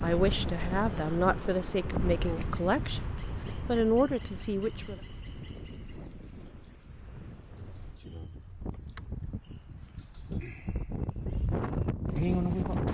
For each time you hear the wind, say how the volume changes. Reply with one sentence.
You can hear the wind from 0.0 to 12.9 s, getting quieter then louder.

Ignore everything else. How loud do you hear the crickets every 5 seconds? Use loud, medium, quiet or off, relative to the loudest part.
medium, medium, loud.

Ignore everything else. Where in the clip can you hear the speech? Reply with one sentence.
You can hear the speech from 0.0 to 5.0 s.